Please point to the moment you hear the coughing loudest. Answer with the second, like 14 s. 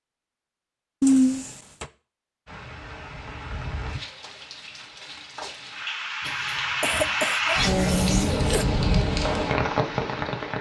1 s.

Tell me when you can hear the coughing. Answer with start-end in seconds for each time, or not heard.
1.0-1.9, 6.2-8.7.